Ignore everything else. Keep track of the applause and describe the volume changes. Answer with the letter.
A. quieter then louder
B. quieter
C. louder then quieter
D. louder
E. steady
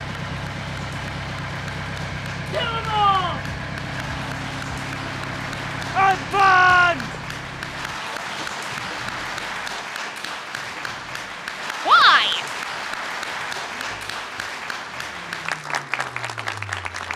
D.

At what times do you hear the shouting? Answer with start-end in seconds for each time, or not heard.
2.5-3.4, 6.0-7.2, 11.8-12.4.